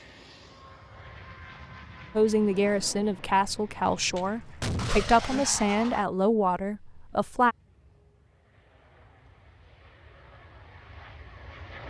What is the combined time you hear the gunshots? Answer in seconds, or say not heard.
2 s.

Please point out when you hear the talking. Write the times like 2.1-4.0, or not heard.
2.1-7.5.